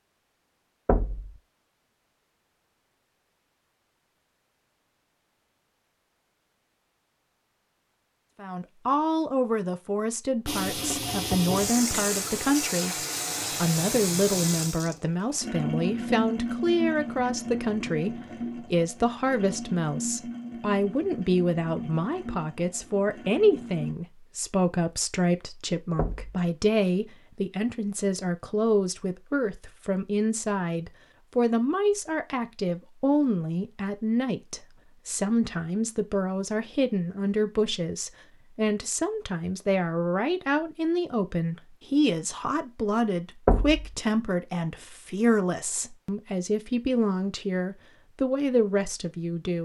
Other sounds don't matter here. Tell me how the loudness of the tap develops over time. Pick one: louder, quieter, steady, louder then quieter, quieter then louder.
quieter.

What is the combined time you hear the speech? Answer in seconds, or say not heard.
41 s.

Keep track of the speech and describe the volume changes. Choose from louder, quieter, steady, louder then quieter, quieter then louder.
steady.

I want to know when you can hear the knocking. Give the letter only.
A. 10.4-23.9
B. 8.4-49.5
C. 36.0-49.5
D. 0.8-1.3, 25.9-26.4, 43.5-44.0
D.